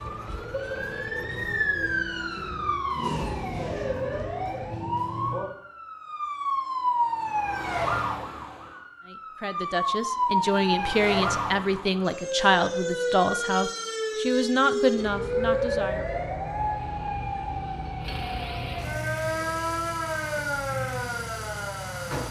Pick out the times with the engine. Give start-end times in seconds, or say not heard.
0.0-1.8, 16.6-22.2.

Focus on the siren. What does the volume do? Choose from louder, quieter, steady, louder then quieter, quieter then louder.
steady.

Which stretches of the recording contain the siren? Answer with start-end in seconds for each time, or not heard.
0.0-22.2.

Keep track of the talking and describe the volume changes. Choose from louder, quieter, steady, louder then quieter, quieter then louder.
steady.